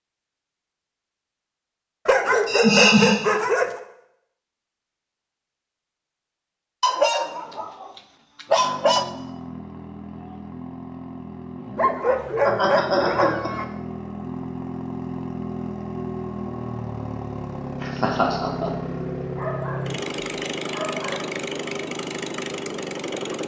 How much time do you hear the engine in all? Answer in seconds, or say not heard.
15 s.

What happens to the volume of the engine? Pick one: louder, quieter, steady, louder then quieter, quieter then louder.
louder.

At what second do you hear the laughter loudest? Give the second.
3 s.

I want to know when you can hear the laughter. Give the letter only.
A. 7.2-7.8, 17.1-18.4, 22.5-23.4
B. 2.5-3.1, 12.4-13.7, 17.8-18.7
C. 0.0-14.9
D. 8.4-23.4
B.